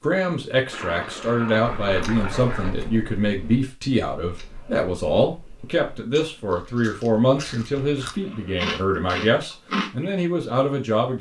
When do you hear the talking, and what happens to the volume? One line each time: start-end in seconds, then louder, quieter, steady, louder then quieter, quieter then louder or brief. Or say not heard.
0.0-11.1 steady.